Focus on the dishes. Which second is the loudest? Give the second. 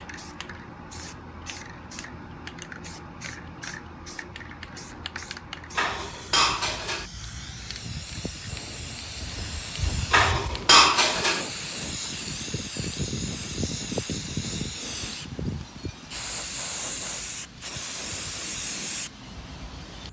11 s.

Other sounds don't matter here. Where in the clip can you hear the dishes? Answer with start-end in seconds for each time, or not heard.
5.8-7.0, 10.1-11.4.